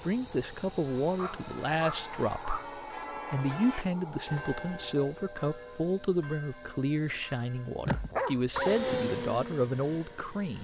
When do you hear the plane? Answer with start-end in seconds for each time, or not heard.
8.5-10.6.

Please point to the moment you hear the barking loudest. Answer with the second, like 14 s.
8 s.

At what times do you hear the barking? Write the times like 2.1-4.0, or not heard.
1.1-2.7, 7.8-8.8.